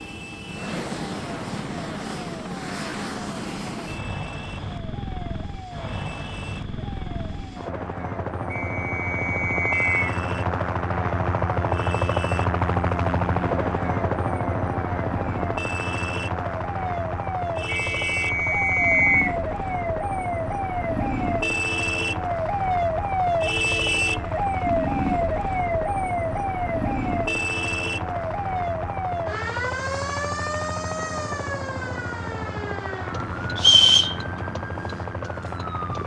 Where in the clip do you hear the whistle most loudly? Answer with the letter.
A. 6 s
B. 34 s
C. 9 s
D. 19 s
B.